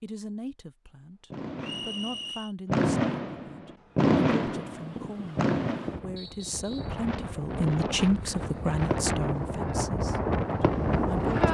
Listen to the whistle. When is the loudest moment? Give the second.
2 s.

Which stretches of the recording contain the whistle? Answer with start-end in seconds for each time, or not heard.
1.6-2.5, 6.2-7.0.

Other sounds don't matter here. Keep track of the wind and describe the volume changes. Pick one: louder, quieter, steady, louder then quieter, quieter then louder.
louder.